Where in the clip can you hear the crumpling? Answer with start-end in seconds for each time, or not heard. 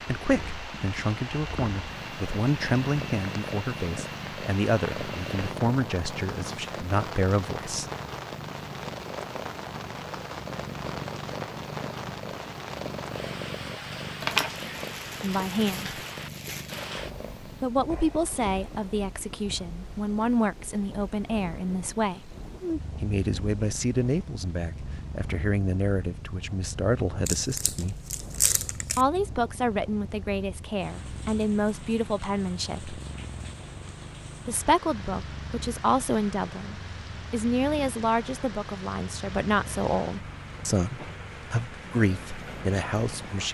14.2-16.9, 27.2-29.1.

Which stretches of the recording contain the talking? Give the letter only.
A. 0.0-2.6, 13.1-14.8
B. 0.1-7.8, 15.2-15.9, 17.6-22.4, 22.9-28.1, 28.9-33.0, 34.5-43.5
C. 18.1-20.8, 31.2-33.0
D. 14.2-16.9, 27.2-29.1
B.